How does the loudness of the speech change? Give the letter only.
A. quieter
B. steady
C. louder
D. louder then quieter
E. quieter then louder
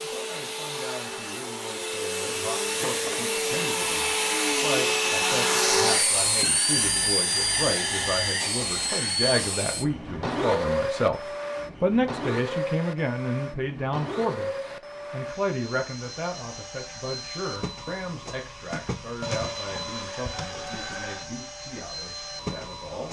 D.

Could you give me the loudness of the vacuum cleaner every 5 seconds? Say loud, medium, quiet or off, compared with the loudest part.
loud, loud, medium, medium, medium.